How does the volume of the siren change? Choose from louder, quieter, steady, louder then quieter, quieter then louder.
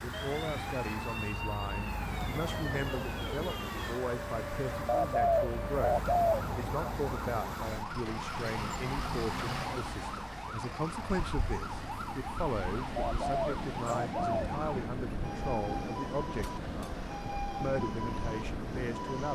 steady.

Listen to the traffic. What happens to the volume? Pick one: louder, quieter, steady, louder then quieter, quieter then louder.
steady.